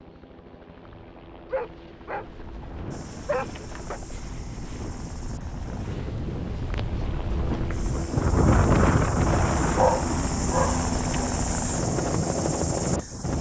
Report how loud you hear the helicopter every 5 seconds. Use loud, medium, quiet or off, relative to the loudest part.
quiet, medium, loud.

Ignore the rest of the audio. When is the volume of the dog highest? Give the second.
10 s.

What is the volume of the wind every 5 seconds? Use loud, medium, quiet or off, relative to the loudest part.
quiet, loud, medium.